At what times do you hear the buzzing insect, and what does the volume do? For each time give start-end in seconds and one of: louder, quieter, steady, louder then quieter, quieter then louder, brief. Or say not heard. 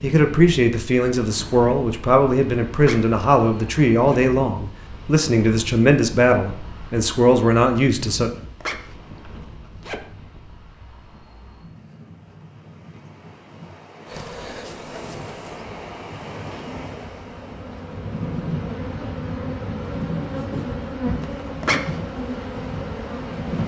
14.1-23.6 louder.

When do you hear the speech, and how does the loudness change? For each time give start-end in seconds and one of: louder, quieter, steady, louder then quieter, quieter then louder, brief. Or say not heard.
0.0-8.3 steady.